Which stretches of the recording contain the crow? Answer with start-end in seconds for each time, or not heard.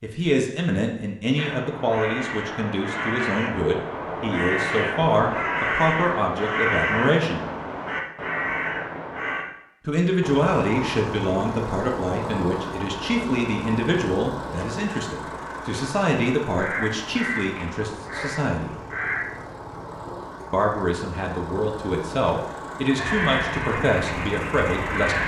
1.4-9.4, 16.6-19.3, 22.9-25.2.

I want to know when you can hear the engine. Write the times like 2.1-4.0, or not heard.
10.2-25.2.